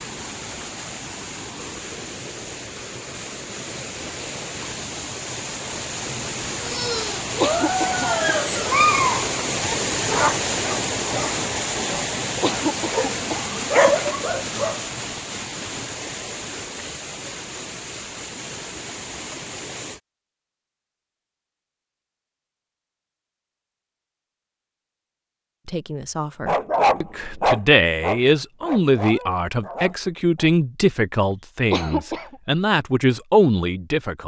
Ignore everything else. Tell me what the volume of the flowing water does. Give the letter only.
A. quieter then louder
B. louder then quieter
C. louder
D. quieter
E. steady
B.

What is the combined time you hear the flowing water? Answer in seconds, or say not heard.
20 s.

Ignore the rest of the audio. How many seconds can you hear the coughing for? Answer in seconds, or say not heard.
3 s.